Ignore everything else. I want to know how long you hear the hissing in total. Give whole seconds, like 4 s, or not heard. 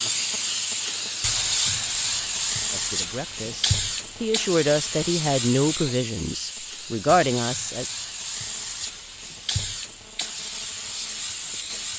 12 s.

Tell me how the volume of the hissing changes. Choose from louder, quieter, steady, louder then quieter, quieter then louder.
quieter.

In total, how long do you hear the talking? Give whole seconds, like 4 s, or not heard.
5 s.